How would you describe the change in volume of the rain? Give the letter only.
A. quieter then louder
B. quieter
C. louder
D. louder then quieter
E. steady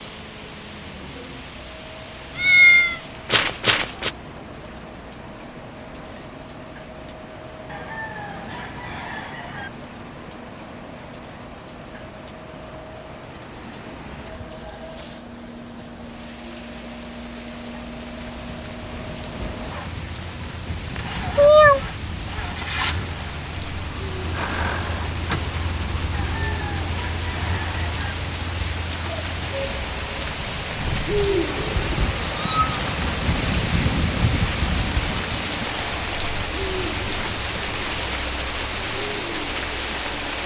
C.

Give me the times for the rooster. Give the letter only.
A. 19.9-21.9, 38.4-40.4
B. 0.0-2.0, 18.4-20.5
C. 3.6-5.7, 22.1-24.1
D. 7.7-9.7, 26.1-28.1
D.